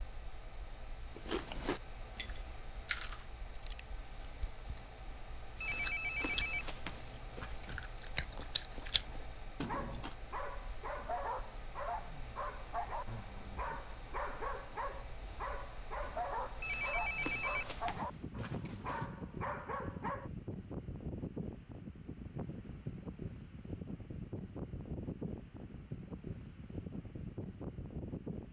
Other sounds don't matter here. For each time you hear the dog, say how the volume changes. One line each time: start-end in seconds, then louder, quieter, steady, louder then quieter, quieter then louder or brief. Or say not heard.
9.6-20.3 steady.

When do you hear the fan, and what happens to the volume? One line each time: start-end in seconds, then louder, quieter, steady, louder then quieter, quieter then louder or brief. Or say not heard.
0.0-28.4 louder.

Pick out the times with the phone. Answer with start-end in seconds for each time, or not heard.
5.6-7.8, 16.6-19.1.